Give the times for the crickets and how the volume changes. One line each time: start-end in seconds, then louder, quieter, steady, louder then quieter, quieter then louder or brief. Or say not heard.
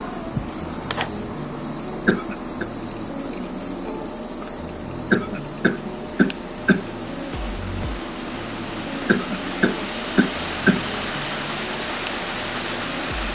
0.0-13.3 steady.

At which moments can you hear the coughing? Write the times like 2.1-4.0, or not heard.
2.0-2.6, 5.1-6.8, 9.1-10.8.